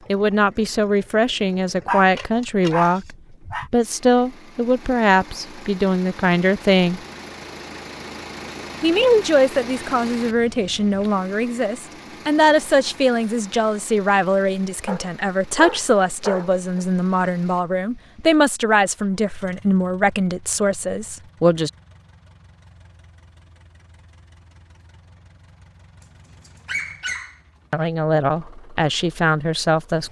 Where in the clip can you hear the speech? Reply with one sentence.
You can hear the speech from 0.1 to 7.0 s, from 8.8 to 21.7 s and from 27.7 to 30.0 s.